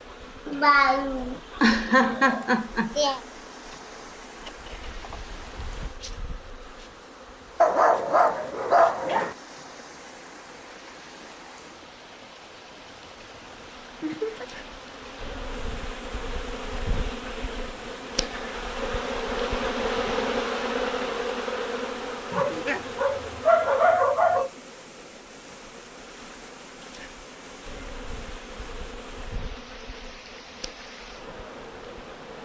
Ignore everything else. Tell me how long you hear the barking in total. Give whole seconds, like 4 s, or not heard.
4 s.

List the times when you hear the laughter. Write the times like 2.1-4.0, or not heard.
0.5-3.2, 14.0-14.5, 22.4-22.9.